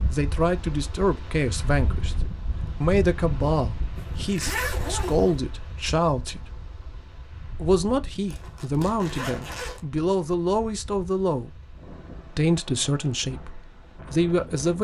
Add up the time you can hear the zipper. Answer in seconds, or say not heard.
3 s.